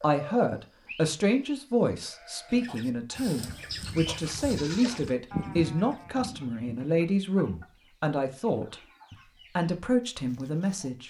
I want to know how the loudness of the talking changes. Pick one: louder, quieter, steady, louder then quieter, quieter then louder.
steady.